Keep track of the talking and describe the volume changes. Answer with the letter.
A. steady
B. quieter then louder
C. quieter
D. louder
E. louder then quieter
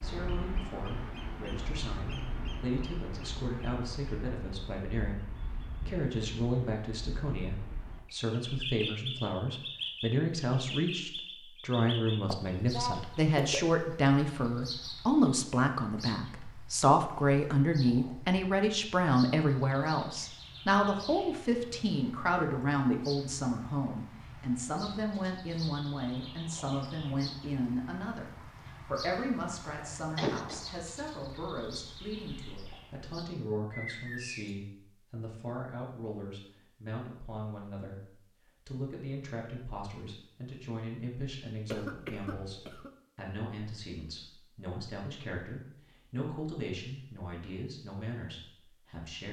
E.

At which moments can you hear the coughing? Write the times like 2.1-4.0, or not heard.
12.3-13.7, 30.1-30.6, 41.6-42.9.